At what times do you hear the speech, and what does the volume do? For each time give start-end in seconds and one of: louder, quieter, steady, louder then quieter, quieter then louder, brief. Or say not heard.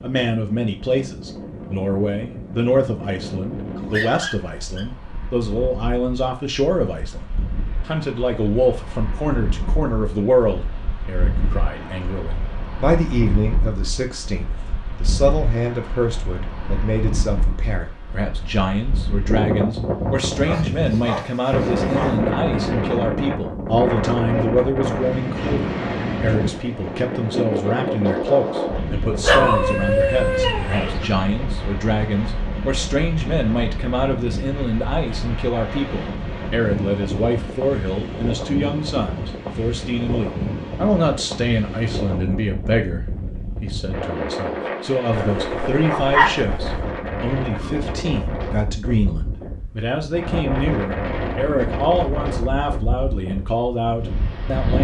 0.0-54.7 steady.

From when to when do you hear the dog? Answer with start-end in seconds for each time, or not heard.
3.8-4.9, 20.4-22.2, 29.2-31.0, 45.1-46.9.